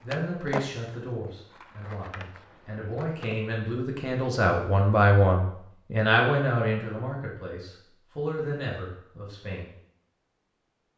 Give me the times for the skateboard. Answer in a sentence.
You can hear the skateboard from 0.0 to 3.4 s.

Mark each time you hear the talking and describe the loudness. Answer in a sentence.
The talking can be heard from 0.0 to 9.7 s, getting louder then quieter.